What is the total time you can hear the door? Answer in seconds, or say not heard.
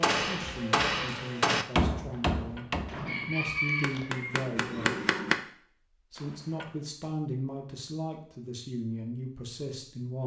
2 s.